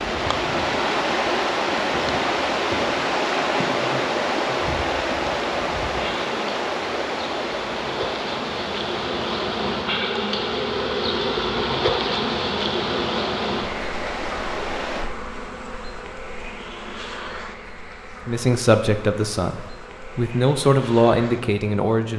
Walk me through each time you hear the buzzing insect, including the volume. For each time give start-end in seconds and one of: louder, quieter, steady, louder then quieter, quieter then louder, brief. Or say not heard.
0.0-22.1 louder then quieter.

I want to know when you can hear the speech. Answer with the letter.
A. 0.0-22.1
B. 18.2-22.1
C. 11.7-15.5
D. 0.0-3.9
B.